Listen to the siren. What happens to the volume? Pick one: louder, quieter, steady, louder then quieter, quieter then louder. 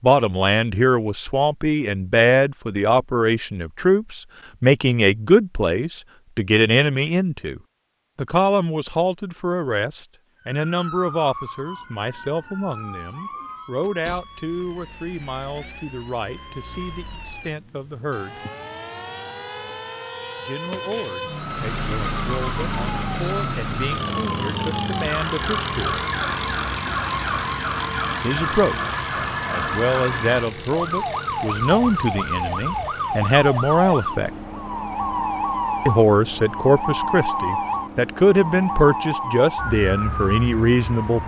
louder.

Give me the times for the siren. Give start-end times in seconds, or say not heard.
10.4-41.2.